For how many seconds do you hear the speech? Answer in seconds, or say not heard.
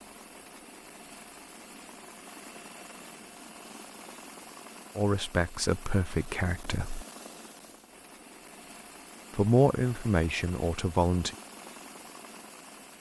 4 s.